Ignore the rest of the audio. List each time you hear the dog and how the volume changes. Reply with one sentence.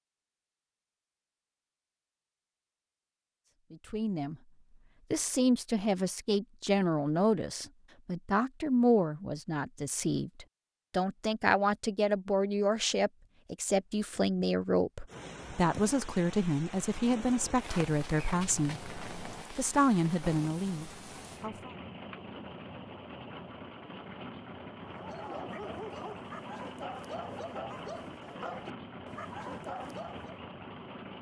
The dog can be heard from 24.8 to 30.4 s, at a steady volume.